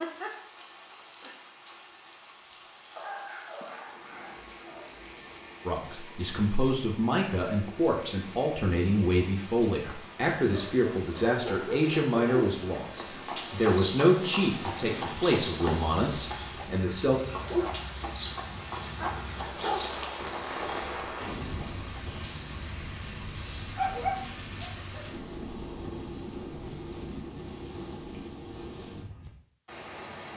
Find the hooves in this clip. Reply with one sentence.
The hooves can be heard from 13.1 to 22.4 s.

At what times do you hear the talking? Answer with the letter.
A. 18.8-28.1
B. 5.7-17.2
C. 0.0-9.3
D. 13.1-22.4
B.